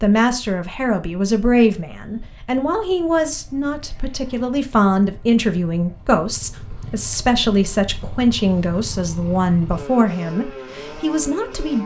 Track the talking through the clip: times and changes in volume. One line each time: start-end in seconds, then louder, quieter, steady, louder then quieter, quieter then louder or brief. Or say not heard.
0.0-11.8 steady.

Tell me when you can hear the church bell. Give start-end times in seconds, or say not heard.
not heard.